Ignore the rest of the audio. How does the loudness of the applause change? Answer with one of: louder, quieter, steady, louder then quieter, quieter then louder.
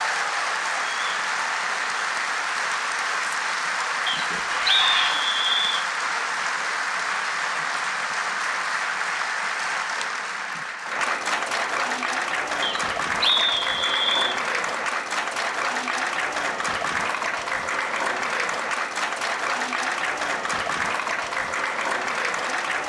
steady.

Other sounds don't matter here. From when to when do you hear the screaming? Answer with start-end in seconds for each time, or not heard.
4.5-5.2.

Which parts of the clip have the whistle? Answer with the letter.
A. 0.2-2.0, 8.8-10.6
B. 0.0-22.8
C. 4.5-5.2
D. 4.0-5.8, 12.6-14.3
D.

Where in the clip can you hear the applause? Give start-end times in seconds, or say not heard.
0.0-22.8.